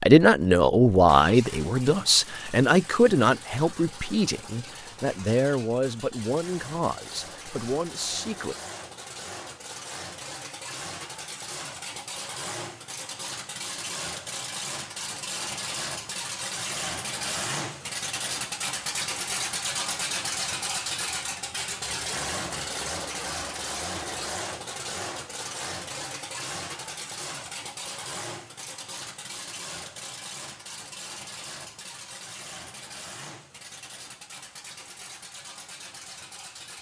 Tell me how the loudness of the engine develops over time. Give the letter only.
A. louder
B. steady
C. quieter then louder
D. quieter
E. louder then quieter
E.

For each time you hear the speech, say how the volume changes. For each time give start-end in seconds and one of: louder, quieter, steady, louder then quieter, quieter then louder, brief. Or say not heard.
0.0-8.6 quieter.